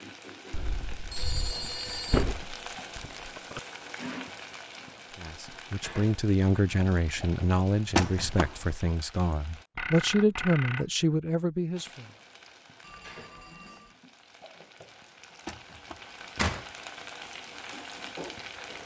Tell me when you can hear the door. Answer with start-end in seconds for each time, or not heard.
1.6-3.6, 8.0-8.6, 15.4-16.6.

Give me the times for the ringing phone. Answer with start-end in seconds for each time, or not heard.
0.5-2.2, 9.8-10.9, 12.8-13.9.